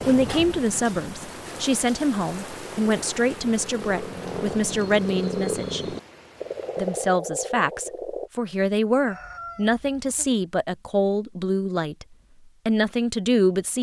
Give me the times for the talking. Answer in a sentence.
The talking can be heard from 0.1 to 6.0 s, from 6.8 to 12.1 s and from 12.7 to 13.7 s.